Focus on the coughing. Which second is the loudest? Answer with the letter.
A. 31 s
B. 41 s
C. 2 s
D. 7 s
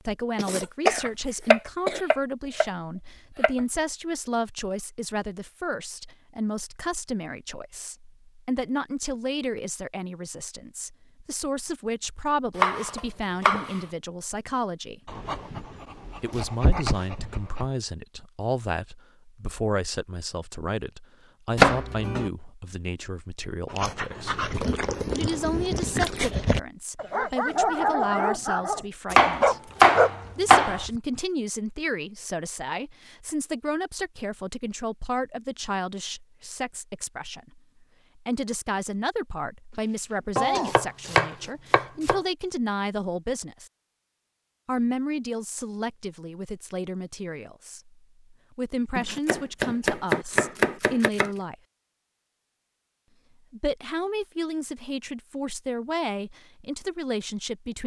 C.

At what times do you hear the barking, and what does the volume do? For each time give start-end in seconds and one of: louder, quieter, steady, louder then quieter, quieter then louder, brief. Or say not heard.
15.1-17.6 brief
23.7-31.0 louder.